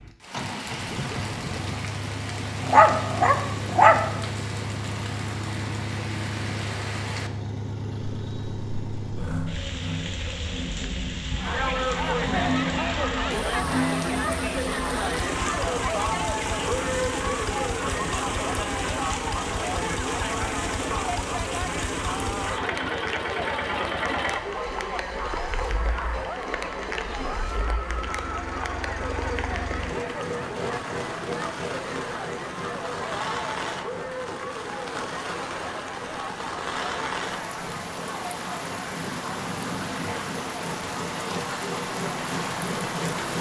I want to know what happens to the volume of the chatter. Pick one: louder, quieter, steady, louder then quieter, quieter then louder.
quieter.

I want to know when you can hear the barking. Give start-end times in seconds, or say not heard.
2.6-4.0.